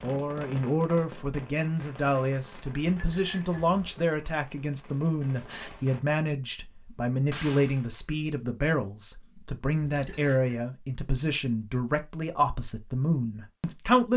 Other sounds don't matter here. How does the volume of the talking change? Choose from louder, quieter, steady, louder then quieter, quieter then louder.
steady.